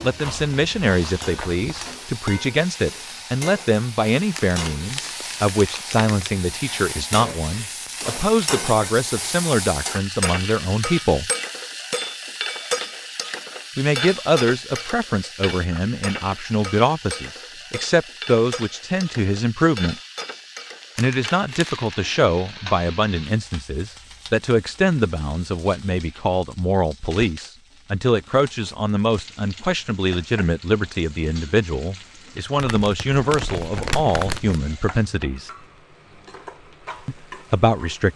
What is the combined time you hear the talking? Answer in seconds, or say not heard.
33 s.